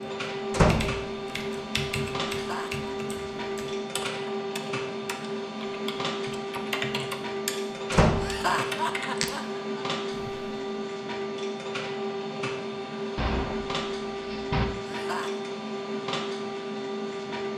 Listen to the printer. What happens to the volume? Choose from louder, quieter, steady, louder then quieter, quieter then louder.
steady.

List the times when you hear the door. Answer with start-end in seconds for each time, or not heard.
0.5-1.0, 7.9-8.4, 13.2-14.7.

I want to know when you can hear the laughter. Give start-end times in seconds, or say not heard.
2.3-2.9, 8.2-9.8, 14.8-15.4.